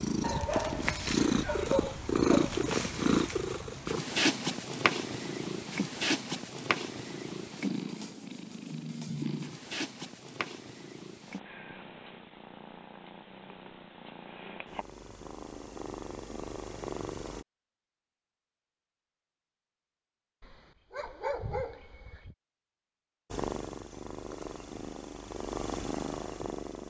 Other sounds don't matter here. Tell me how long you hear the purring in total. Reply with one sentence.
You can hear the purring for 21 seconds altogether.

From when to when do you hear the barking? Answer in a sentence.
The barking can be heard from 0.2 to 2.6 s and from 20.4 to 22.4 s.